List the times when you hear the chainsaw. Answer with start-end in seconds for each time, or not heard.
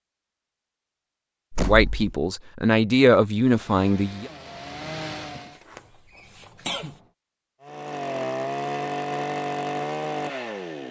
3.2-5.6, 7.6-10.8.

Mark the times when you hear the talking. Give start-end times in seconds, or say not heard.
1.6-4.3.